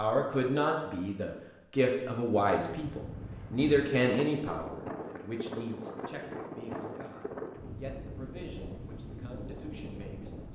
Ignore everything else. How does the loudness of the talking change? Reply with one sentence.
The loudness of the talking goes down.